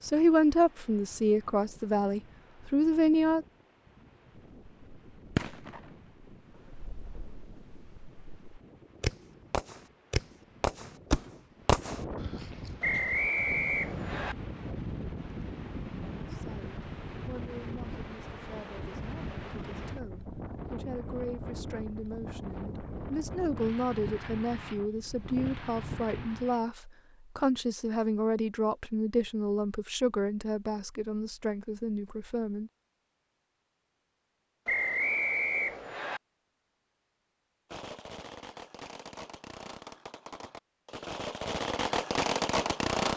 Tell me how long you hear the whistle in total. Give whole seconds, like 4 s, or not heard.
3 s.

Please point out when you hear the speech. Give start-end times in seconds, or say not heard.
0.0-3.5, 16.2-32.7.